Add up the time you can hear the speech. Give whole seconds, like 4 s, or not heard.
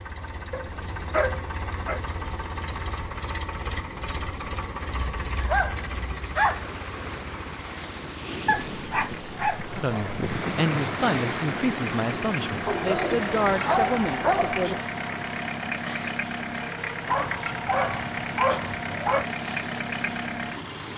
5 s.